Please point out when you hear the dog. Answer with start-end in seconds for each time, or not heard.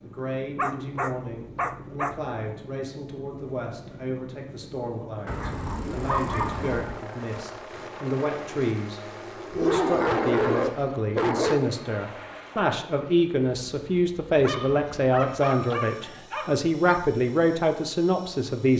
0.6-2.2, 5.2-7.0, 9.5-11.7, 14.3-17.1.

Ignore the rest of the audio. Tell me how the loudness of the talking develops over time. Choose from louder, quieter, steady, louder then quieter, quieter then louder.
louder.